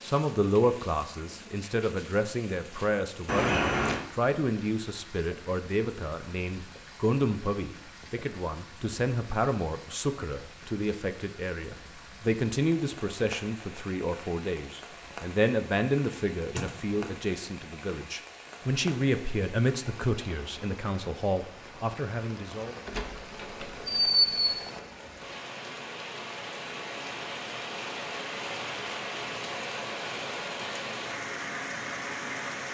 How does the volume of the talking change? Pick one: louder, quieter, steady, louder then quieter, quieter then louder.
steady.